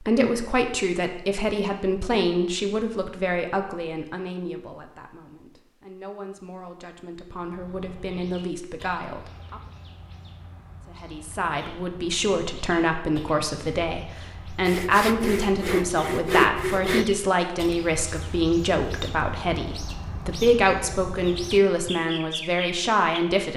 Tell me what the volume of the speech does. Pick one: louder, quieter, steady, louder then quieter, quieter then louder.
quieter then louder.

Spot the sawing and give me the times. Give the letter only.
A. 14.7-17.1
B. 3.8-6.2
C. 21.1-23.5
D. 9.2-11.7
A.